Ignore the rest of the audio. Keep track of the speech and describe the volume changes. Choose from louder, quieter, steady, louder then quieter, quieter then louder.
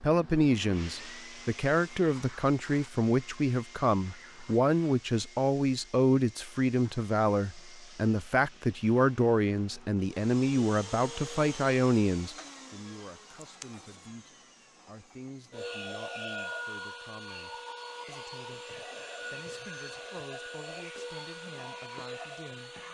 quieter.